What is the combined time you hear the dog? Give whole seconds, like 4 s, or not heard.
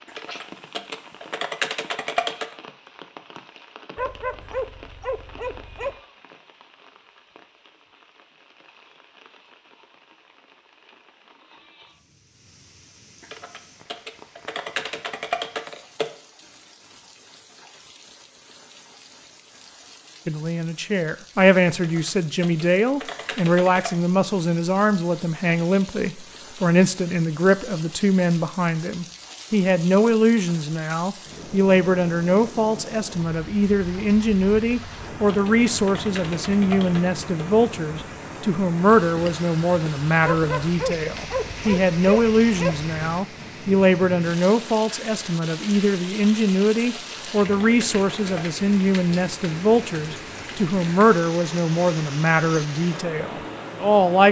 5 s.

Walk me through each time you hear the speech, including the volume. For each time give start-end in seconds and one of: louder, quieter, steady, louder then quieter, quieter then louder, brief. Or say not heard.
20.2-54.2 steady.